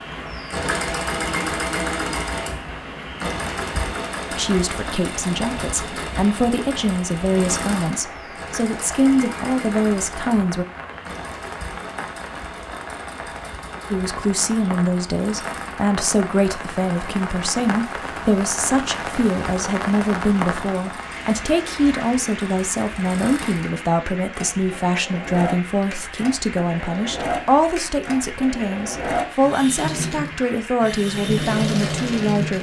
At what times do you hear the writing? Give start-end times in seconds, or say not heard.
not heard.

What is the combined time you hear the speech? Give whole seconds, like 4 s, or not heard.
25 s.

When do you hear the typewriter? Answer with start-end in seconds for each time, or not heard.
not heard.